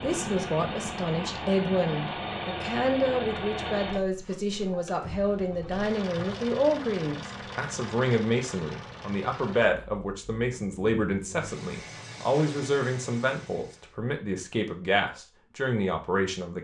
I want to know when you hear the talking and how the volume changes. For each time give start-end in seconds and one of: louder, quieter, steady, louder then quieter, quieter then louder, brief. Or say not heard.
0.0-16.5 steady.